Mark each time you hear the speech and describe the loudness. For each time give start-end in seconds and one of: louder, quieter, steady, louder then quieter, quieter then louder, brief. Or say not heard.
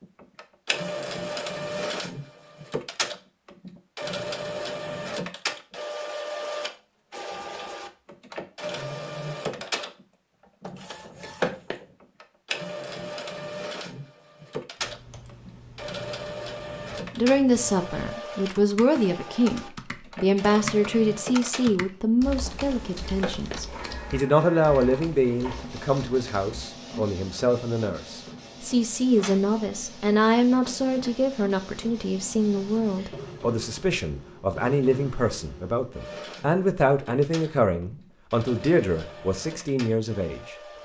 17.1-40.5 steady.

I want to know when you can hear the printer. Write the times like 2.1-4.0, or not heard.
0.0-40.8.